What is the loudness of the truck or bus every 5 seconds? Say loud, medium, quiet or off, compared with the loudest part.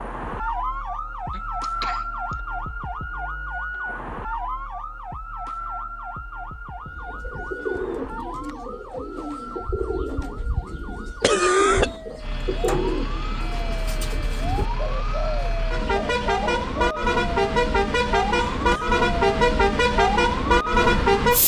off, off, quiet, loud, loud.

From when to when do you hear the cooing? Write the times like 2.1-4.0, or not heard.
6.8-17.0.